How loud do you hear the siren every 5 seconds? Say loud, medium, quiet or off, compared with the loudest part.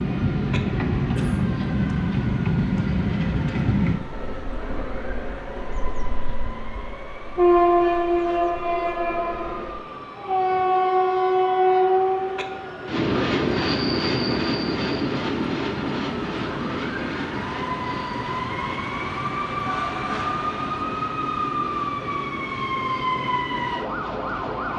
quiet, quiet, quiet, loud, loud.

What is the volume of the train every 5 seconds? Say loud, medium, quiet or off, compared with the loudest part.
loud, loud, loud, medium, quiet.